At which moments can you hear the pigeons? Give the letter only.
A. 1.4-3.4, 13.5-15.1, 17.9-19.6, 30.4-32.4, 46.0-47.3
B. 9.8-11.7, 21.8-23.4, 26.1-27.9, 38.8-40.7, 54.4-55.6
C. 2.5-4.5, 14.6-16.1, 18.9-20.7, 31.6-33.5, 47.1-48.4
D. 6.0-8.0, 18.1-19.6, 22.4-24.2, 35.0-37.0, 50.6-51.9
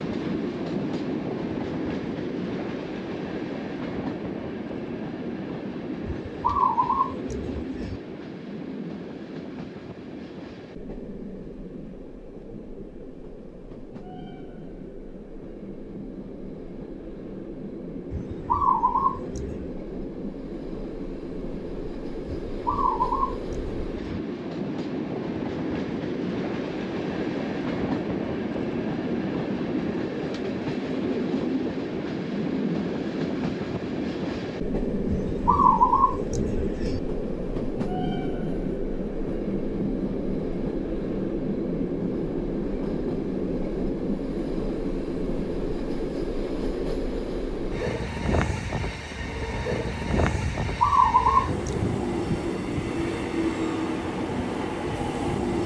D.